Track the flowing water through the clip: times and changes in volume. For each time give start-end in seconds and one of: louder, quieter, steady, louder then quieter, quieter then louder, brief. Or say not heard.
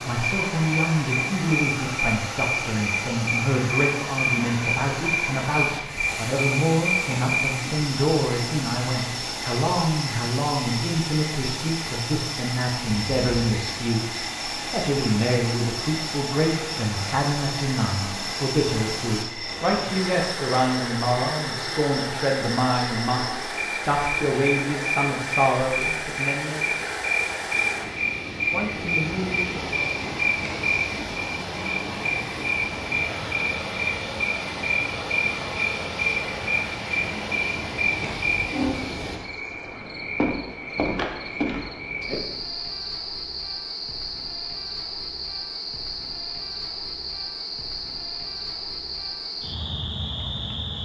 0.0-39.2 steady.